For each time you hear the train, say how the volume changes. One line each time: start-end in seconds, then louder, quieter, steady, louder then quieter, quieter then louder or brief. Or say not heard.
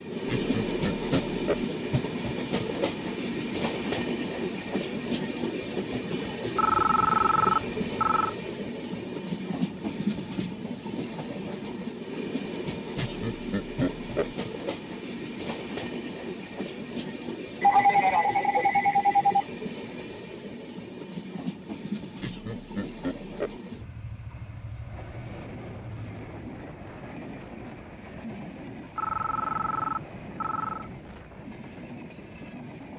0.0-32.9 quieter.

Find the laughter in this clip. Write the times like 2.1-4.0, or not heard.
0.2-1.6, 12.9-14.3, 22.2-23.6.